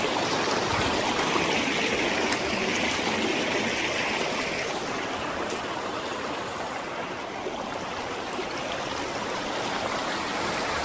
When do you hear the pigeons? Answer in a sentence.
The pigeons can be heard from 0.1 to 3.8 s.